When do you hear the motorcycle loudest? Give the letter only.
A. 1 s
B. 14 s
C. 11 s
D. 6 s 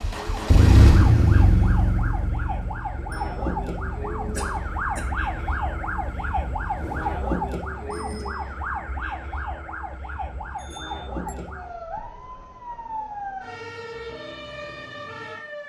A.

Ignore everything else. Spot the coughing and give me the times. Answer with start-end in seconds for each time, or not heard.
4.3-5.2.